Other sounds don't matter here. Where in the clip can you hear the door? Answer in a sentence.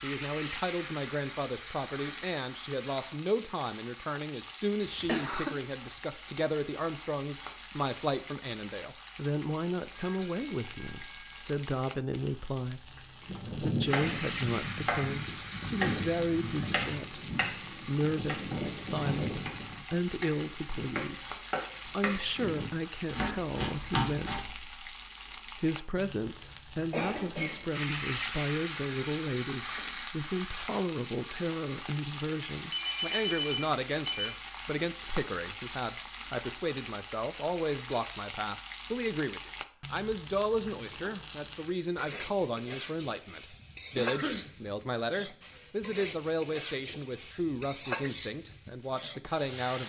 You can't hear the door here.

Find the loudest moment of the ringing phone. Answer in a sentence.
The loudest moment of the ringing phone is at 33 seconds.